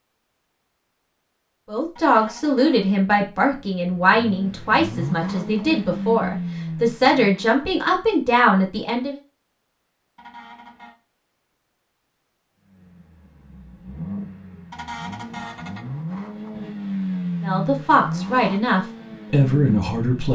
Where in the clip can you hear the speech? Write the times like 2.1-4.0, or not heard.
1.6-9.2, 17.4-20.3.